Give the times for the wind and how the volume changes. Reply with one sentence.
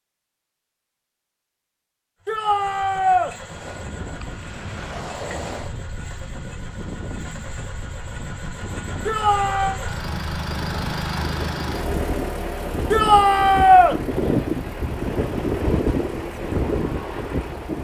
The wind can be heard from 3.4 to 17.7 s, getting louder.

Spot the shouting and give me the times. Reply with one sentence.
You can hear the shouting from 2.2 to 3.4 s, from 9.1 to 9.8 s and from 12.9 to 13.9 s.